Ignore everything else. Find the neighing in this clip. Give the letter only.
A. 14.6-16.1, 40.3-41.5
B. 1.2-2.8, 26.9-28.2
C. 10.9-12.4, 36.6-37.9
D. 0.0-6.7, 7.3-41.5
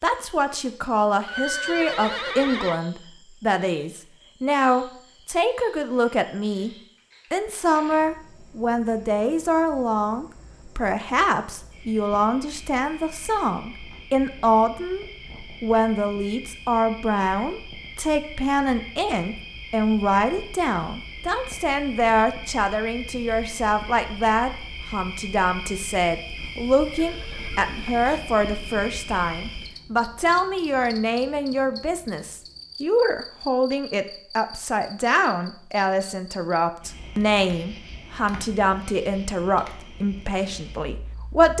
B.